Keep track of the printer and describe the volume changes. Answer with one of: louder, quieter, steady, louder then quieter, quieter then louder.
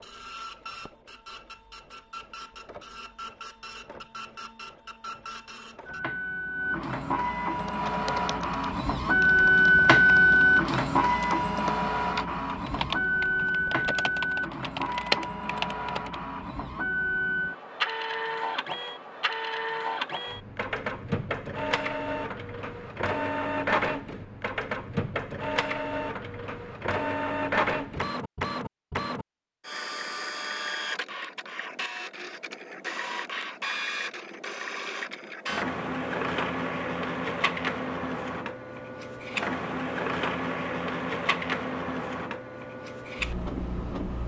louder then quieter.